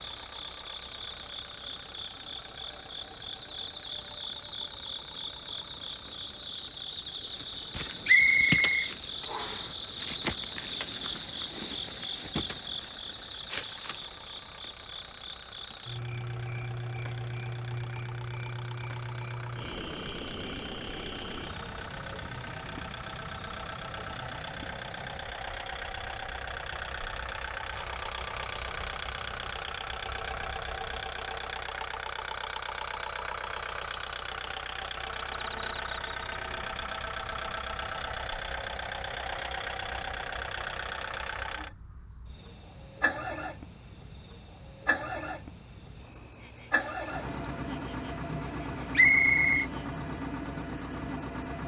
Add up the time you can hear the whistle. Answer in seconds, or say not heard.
2 s.